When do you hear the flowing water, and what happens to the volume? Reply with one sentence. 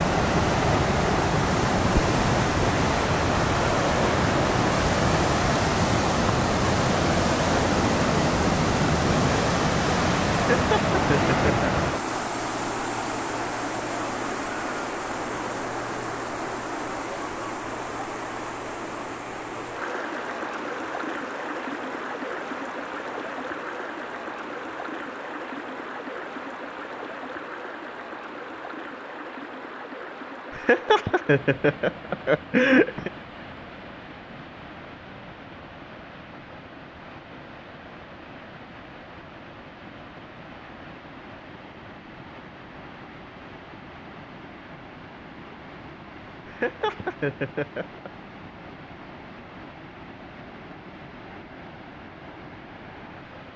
You can hear the flowing water from 0.0 to 53.5 s, getting quieter.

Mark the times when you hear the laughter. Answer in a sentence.
You can hear the laughter from 10.5 to 11.7 s, from 30.5 to 33.1 s and from 46.5 to 48.1 s.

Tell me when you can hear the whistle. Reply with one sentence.
You can't hear the whistle here.